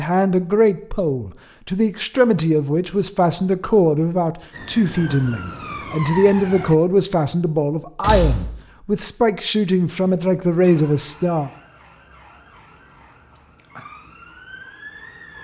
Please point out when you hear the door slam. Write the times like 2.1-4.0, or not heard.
8.0-8.5.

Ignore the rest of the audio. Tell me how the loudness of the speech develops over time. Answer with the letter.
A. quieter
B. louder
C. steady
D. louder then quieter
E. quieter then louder
C.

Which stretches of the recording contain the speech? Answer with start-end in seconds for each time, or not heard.
0.0-11.5.